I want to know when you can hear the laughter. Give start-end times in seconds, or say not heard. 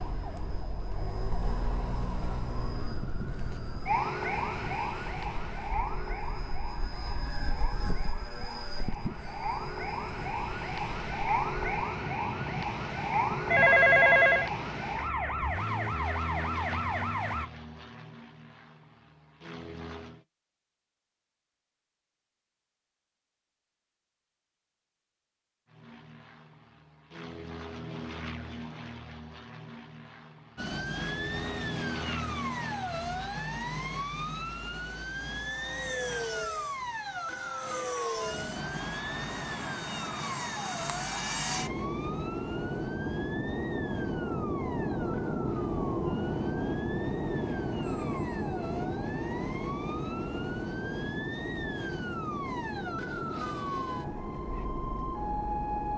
not heard.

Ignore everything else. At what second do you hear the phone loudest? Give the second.
14 s.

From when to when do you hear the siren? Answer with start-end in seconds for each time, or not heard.
0.0-17.5, 30.6-55.9.